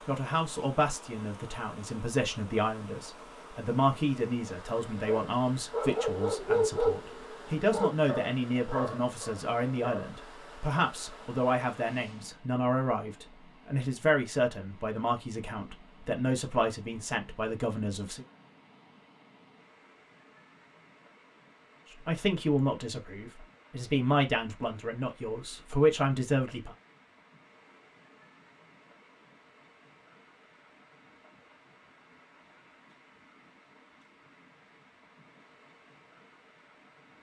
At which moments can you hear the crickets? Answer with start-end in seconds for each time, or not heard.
not heard.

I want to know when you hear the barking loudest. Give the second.
7 s.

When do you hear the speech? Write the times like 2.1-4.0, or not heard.
0.1-18.2, 22.0-26.8.